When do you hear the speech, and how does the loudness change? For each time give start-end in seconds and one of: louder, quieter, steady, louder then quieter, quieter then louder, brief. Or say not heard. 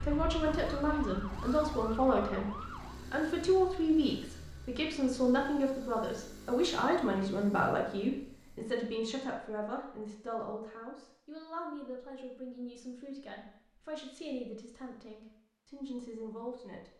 0.0-16.9 quieter.